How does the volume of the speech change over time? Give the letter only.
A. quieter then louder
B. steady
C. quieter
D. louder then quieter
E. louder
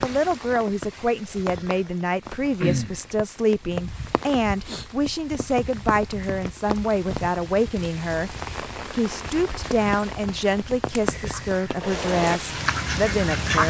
B.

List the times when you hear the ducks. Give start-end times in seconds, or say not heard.
11.2-13.6.